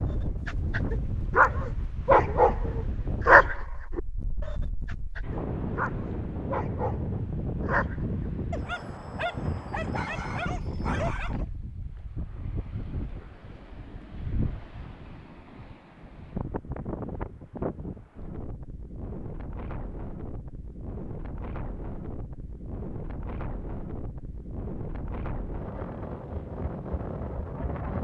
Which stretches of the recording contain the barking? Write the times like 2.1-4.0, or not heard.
0.5-11.4.